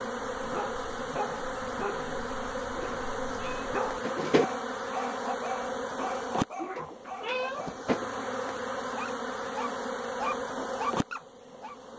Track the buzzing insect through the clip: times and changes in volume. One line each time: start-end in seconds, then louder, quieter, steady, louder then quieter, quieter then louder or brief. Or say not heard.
0.0-11.9 steady.